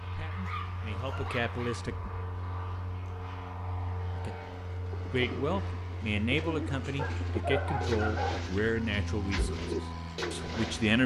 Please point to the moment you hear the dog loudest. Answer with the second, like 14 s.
8 s.